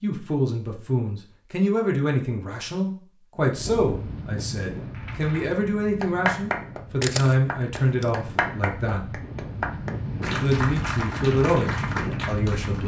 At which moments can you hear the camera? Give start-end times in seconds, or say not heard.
7.0-8.1.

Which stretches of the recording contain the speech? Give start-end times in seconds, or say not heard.
0.0-9.2, 10.4-12.8.